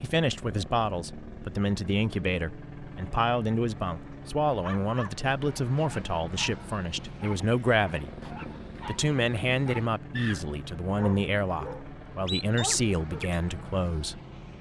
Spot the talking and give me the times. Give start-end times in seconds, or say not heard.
0.0-8.1, 8.8-14.5.